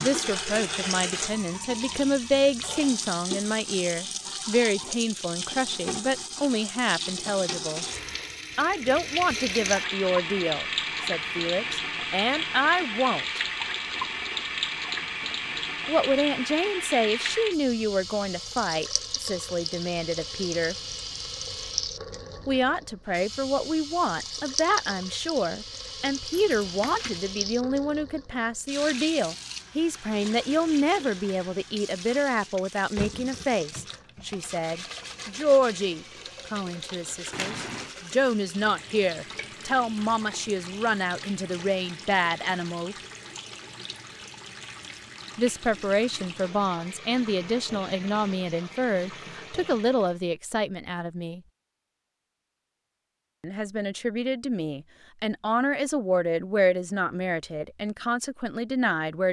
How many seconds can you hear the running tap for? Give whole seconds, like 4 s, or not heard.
50 s.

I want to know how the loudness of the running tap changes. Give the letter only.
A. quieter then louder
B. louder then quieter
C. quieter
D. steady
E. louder
C.